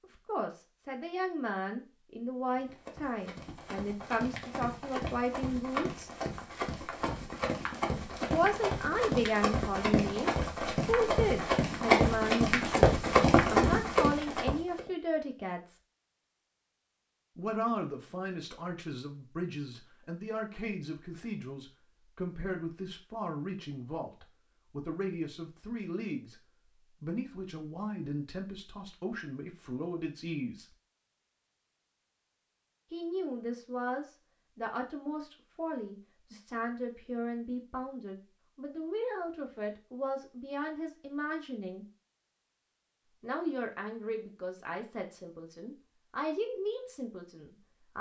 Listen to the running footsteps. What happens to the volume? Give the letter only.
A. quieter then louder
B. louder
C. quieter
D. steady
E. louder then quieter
B.